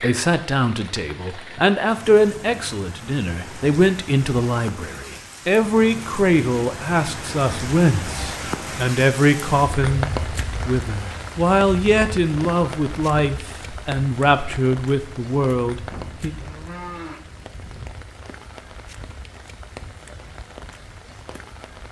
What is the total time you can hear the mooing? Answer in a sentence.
You can hear the mooing for 2 seconds altogether.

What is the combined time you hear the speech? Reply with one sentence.
You can hear the speech for 16 seconds altogether.